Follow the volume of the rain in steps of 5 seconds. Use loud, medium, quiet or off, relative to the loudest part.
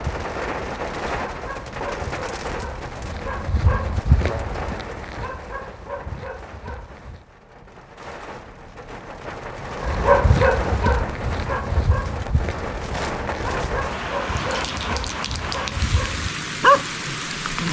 loud, medium, loud, loud.